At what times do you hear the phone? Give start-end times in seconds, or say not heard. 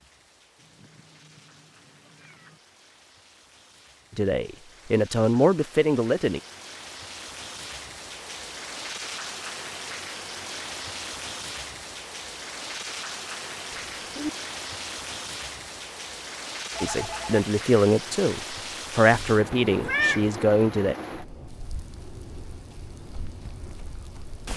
16.7-17.4.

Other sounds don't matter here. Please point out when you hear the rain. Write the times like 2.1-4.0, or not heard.
0.0-24.5.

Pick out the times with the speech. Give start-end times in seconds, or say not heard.
4.2-6.4, 16.8-20.9.